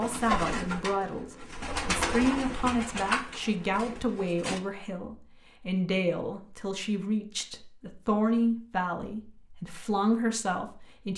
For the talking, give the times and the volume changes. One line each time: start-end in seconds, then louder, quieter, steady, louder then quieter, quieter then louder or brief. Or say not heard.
0.0-11.1 steady.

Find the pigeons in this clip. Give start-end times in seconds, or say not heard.
0.0-4.6.